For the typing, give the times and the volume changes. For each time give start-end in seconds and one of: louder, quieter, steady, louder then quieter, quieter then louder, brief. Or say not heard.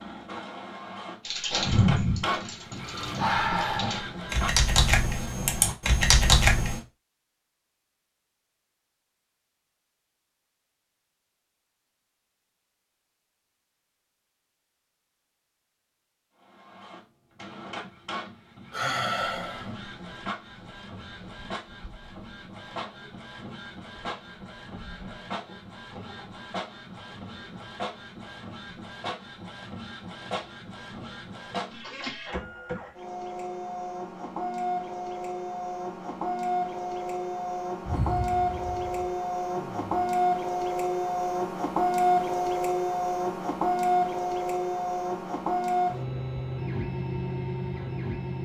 1.2-6.8 quieter then louder.